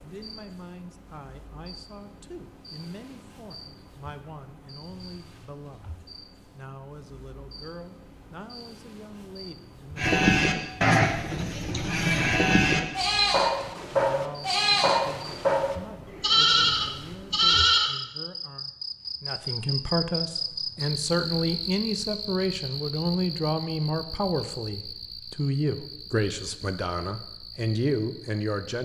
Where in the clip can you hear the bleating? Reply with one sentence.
The bleating can be heard from 9.9 to 17.9 s.